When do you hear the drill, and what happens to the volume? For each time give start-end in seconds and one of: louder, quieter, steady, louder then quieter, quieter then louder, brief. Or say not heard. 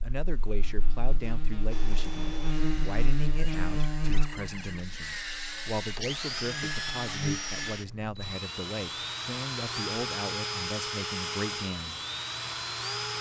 1.7-13.1 louder.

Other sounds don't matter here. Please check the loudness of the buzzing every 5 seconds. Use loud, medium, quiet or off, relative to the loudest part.
loud, loud, off.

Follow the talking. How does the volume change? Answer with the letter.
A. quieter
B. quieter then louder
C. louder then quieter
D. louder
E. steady
E.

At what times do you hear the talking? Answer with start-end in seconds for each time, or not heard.
0.0-12.0.